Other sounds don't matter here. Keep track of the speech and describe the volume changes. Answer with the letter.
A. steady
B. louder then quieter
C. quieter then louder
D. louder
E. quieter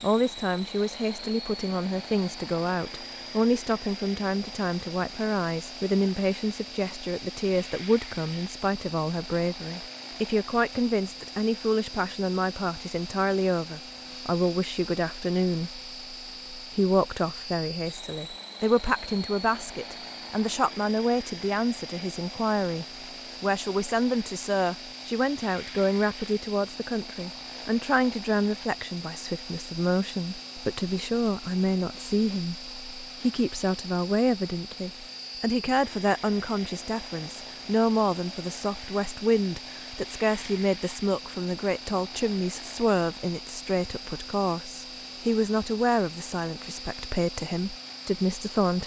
A.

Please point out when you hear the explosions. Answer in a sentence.
The explosions can't be heard in this clip.